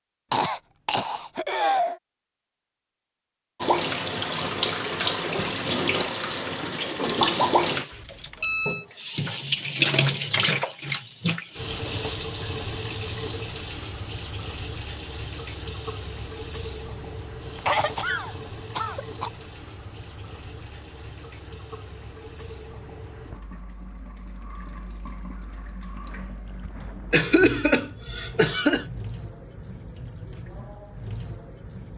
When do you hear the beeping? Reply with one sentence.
The beeping can be heard from 7.9 to 8.8 s.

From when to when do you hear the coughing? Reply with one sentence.
You can hear the coughing from 0.3 to 2.0 s, from 17.6 to 19.3 s and from 27.1 to 28.9 s.